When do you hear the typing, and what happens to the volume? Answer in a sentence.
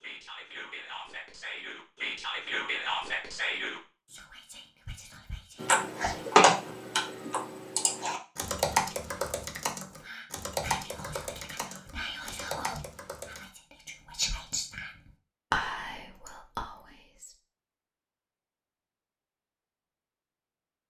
The typing can be heard from 5.6 to 13.4 s, getting quieter.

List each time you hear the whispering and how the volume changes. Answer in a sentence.
The whispering can be heard from 0.0 to 6.3 s, getting louder then quieter; and from 9.9 to 17.4 s, getting louder then quieter.